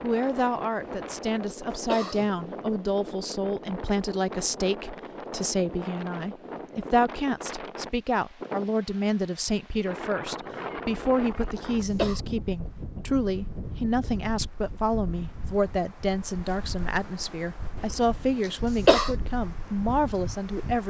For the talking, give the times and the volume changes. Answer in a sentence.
The talking can be heard from 0.0 to 20.8 s, at a steady volume.